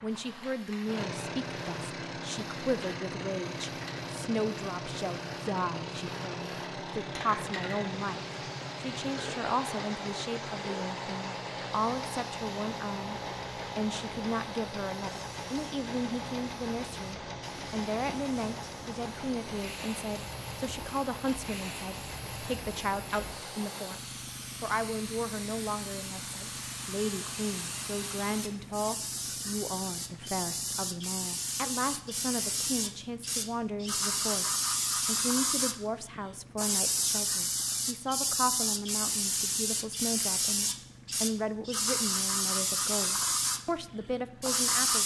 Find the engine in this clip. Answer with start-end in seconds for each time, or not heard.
0.0-45.0.